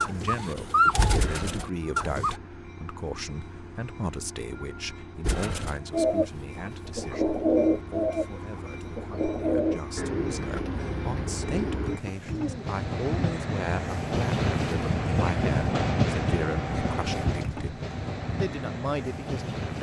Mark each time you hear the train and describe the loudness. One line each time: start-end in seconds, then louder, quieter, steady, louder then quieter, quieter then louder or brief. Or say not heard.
0.0-19.7 louder.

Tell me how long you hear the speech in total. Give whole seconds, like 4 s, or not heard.
20 s.